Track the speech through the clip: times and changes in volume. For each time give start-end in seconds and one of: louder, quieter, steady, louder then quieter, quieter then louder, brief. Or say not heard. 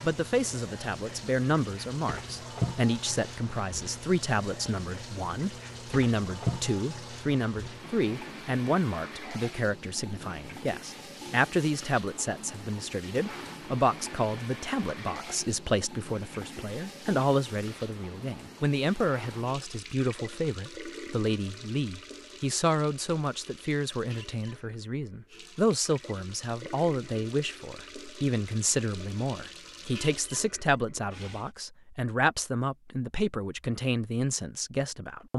0.0-35.3 steady.